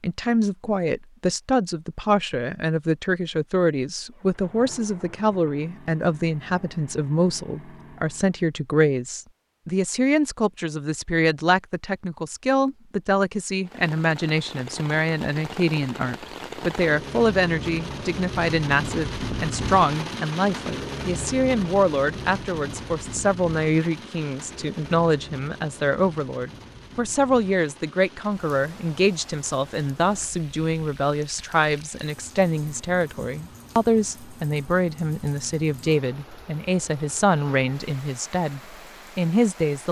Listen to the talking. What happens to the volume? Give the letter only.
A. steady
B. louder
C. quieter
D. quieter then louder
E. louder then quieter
A.